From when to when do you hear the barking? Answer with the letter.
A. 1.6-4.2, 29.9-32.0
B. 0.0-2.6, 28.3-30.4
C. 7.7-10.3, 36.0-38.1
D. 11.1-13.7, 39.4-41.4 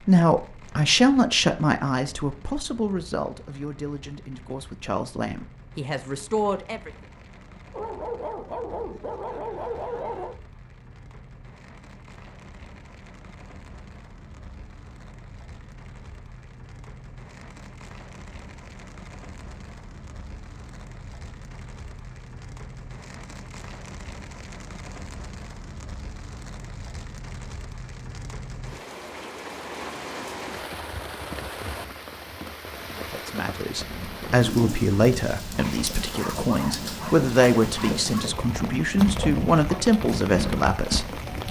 C.